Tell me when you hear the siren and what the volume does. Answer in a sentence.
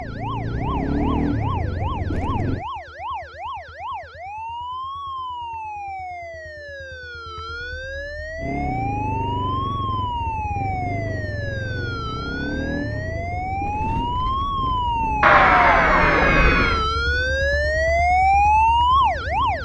You can hear the siren from 0.0 to 19.6 s, getting louder.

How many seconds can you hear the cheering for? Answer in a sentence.
You can hear the cheering for 2 seconds altogether.